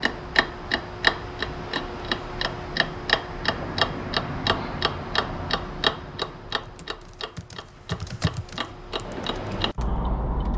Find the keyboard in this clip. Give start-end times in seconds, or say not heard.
6.5-10.5.